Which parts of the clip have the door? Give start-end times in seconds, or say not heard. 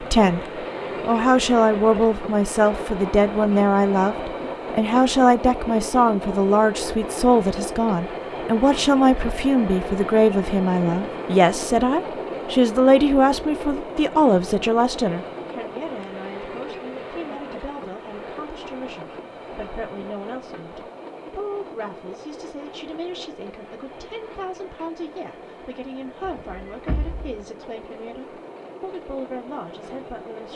26.2-27.4.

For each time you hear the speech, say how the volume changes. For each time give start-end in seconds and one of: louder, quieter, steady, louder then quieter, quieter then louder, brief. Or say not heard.
0.0-30.5 quieter.